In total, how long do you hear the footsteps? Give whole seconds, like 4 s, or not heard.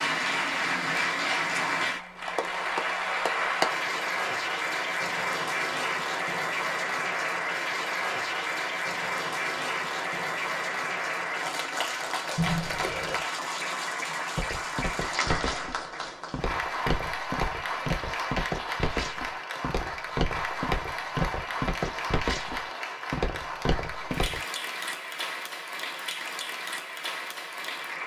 10 s.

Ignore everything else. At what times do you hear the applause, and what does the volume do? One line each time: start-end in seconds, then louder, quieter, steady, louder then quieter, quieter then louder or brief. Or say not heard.
0.0-28.0 quieter.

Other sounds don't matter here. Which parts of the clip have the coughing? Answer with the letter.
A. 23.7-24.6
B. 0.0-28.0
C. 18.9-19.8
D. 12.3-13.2
D.